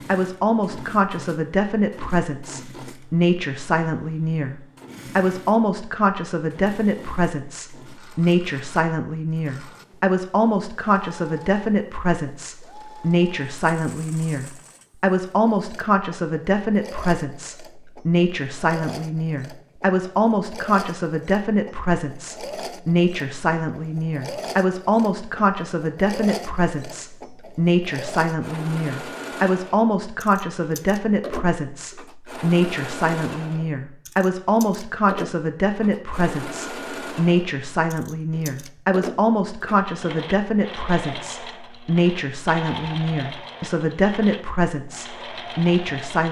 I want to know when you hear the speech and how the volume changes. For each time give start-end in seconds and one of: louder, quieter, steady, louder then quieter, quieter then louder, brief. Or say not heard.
0.1-46.2 steady.